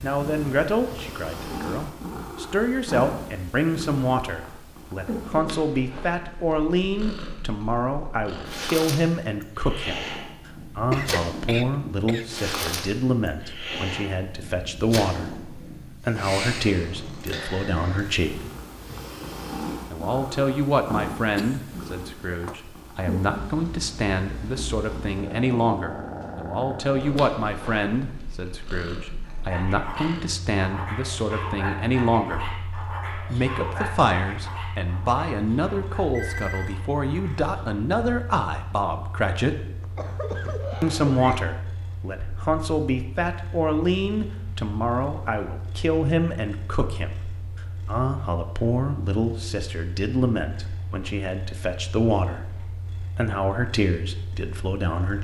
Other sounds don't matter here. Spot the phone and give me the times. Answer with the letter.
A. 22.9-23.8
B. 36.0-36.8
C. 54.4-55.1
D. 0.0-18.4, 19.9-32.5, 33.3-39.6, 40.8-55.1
B.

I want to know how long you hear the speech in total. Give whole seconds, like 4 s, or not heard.
52 s.